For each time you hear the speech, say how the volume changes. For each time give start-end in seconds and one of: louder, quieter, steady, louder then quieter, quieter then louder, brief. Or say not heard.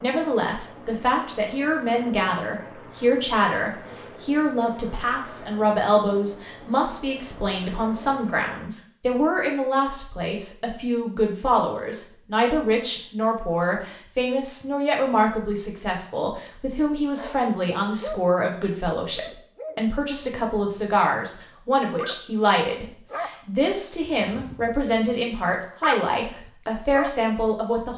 0.0-27.9 steady.